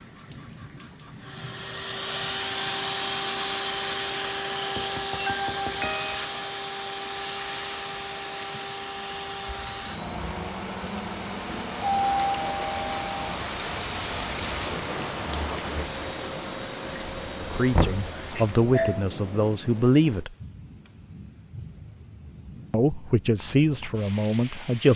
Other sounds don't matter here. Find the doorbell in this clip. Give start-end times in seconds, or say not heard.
5.2-6.2, 11.8-13.3, 18.3-19.1.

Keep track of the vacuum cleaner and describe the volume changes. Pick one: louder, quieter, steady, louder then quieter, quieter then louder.
quieter.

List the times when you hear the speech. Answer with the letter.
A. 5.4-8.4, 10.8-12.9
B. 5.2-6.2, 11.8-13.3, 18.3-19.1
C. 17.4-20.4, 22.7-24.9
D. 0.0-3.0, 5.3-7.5
C.